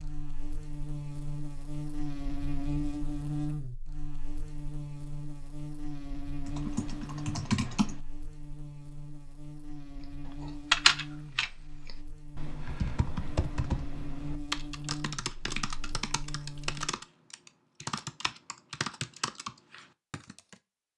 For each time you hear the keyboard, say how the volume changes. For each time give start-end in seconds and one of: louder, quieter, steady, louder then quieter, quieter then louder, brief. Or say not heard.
6.5-8.0 brief
10.4-20.6 quieter.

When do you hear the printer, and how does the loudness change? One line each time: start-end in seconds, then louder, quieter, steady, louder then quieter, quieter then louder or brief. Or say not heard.
not heard.